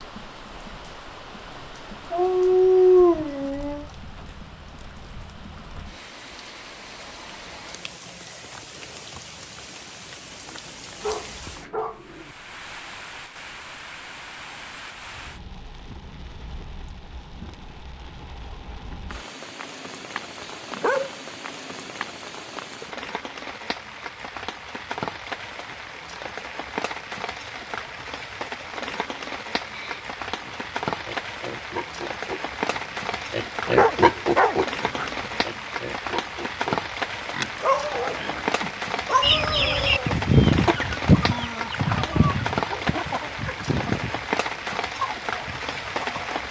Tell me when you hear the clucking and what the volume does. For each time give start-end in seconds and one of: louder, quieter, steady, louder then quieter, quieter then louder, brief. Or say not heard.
39.2-46.4 quieter.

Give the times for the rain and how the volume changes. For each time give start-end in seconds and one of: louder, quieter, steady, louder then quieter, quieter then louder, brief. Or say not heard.
0.0-46.4 louder.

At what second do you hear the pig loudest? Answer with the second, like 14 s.
34 s.